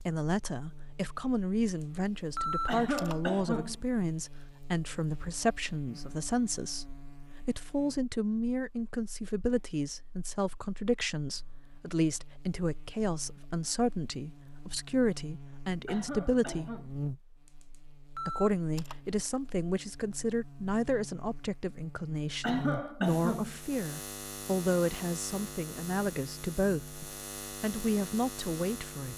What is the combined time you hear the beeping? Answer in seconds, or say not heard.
3 s.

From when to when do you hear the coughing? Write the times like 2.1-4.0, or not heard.
2.6-3.8, 15.8-16.9, 22.4-23.6.